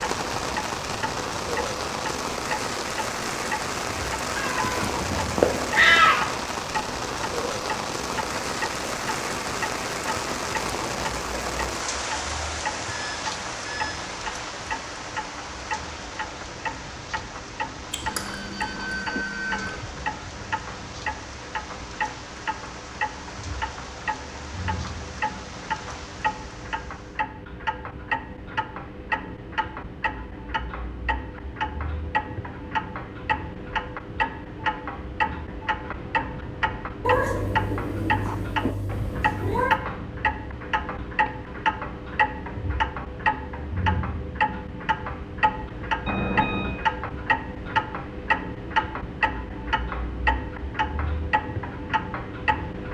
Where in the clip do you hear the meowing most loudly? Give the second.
6 s.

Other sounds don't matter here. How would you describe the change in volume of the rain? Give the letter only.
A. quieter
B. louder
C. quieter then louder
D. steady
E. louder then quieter
A.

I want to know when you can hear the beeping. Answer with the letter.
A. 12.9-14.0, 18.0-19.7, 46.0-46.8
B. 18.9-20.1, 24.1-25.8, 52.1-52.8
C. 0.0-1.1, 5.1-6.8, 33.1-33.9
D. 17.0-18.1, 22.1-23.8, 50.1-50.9
A.